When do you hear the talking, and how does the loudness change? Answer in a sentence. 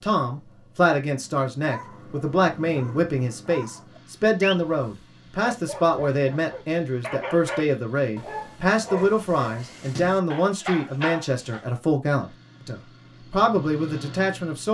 The talking can be heard from 0.0 to 14.6 s, at a steady volume.